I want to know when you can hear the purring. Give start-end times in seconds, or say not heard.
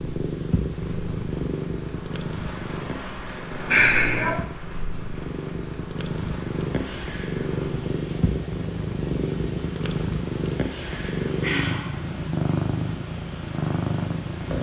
0.0-14.5.